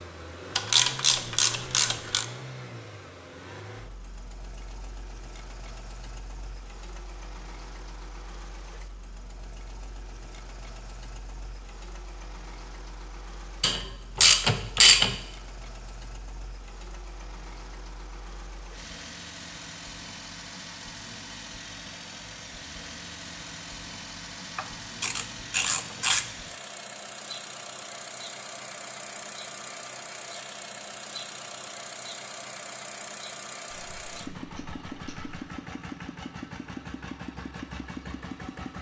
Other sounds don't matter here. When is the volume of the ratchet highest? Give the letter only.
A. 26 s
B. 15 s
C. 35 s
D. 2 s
B.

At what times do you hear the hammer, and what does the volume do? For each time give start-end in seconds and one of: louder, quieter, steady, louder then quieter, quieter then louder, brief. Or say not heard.
not heard.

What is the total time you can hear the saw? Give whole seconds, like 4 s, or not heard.
not heard.